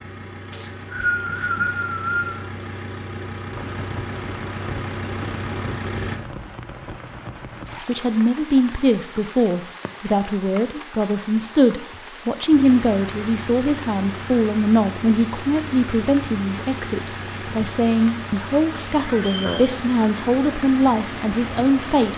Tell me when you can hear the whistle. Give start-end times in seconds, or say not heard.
0.5-2.4, 19.1-19.7.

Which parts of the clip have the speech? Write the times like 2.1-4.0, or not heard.
7.8-22.1.